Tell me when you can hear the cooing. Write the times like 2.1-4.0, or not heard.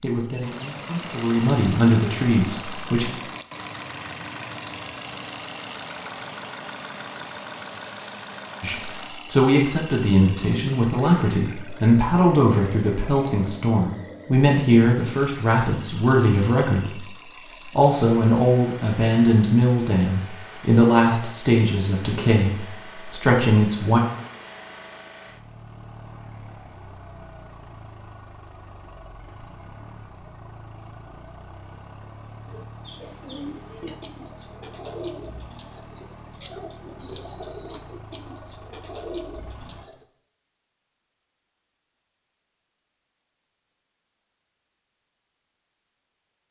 32.5-40.0.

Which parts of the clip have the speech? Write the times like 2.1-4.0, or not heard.
0.0-3.1, 8.6-24.0.